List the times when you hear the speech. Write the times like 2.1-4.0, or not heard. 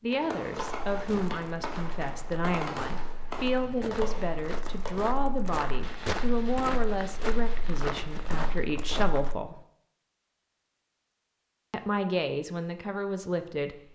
0.0-9.6, 11.7-13.8.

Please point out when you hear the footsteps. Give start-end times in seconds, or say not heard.
0.6-9.3.